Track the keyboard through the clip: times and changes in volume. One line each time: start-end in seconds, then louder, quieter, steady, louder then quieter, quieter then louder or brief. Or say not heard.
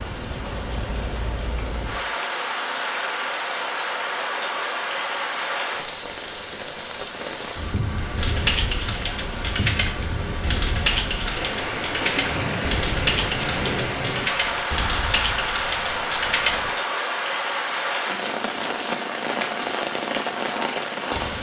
8.2-16.7 steady.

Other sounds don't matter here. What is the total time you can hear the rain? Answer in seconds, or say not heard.
21 s.